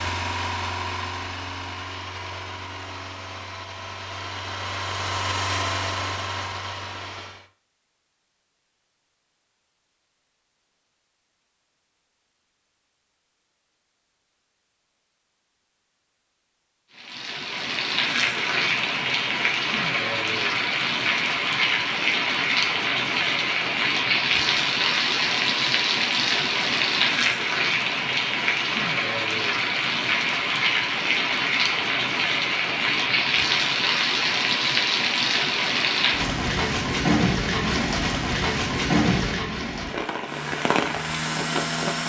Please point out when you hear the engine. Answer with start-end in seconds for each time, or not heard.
0.0-7.5, 40.2-42.0.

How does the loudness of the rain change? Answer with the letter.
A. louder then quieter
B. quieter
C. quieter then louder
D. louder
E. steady
E.